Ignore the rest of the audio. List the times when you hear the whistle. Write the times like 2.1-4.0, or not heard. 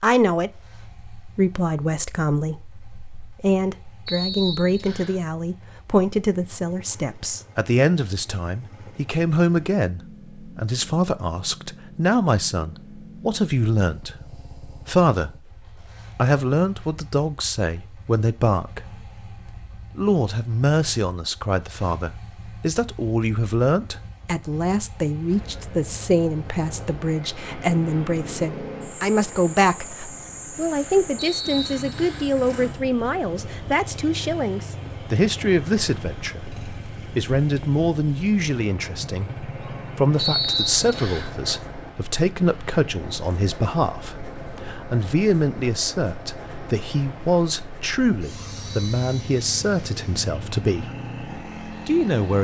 4.0-5.2, 31.1-32.3, 40.1-41.3.